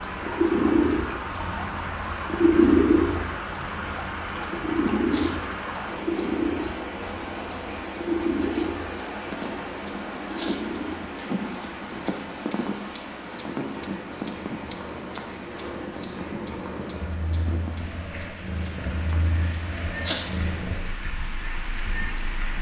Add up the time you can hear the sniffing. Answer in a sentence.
The sniffing can be heard for 2 seconds in total.